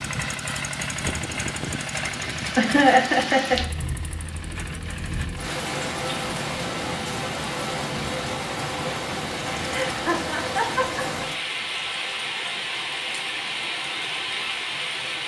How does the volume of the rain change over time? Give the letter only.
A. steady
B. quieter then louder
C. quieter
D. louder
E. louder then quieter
D.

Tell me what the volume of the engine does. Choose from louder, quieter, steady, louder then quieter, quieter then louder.
quieter.